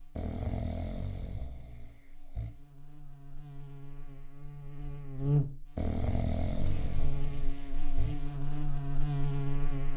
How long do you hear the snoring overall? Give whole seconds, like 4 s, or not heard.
5 s.